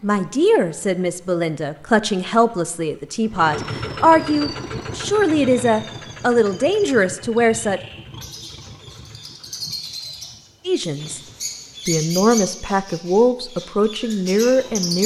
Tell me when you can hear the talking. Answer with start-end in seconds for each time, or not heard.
0.0-7.8, 10.7-11.2, 11.8-15.0.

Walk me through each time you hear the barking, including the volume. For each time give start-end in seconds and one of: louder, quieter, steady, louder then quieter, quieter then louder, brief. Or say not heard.
not heard.